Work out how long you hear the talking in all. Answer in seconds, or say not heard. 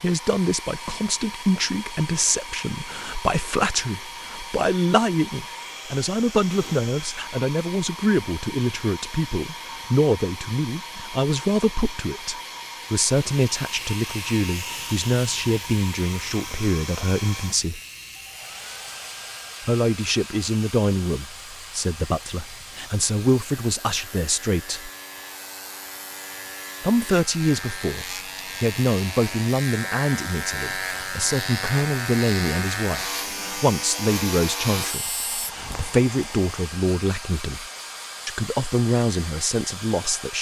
36 s.